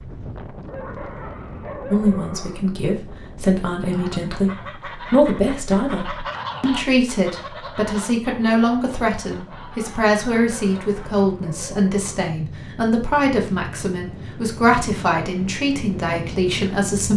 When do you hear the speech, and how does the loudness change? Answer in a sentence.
The speech can be heard from 1.9 to 17.1 s, at a steady volume.